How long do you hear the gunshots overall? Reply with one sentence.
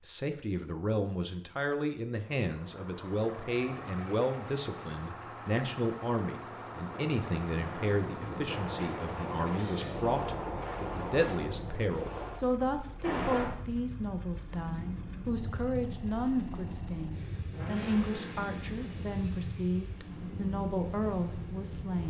The gunshots can be heard for 4 seconds in total.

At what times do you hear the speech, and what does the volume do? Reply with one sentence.
You can hear the speech from 0.0 to 22.0 s, at a steady volume.